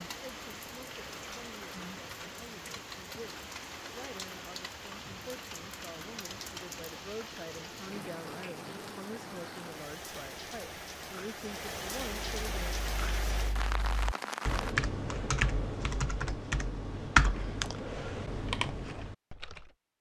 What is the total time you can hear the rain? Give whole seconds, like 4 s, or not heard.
15 s.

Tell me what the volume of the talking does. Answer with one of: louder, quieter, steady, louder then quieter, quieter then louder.
louder.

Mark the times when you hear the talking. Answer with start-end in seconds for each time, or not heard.
0.1-12.8.